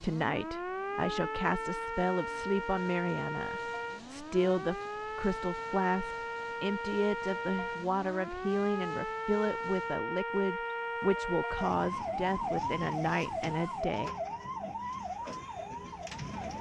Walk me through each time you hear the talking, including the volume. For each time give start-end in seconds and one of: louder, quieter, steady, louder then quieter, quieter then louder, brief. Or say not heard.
0.0-14.1 steady.